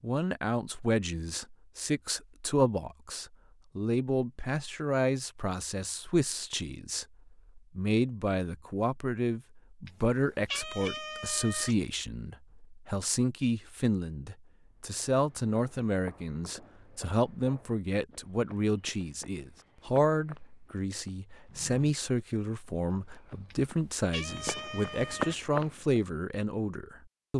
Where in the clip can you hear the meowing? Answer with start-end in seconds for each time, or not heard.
9.8-11.8, 23.5-25.4.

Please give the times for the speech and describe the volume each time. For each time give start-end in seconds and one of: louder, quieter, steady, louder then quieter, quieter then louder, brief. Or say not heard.
0.0-27.3 steady.